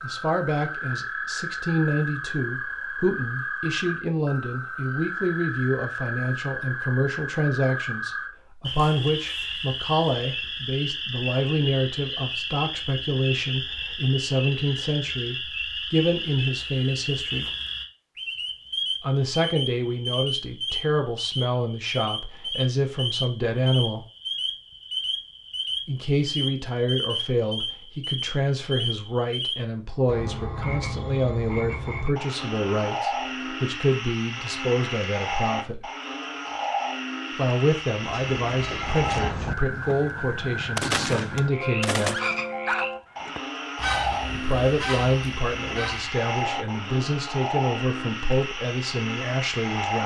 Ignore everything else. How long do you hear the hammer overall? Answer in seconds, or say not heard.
not heard.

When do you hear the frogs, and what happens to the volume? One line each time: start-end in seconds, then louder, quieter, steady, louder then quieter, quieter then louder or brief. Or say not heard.
0.0-50.0 steady.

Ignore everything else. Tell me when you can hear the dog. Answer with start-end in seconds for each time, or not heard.
not heard.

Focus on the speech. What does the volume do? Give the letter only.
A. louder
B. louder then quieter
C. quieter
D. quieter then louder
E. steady
E.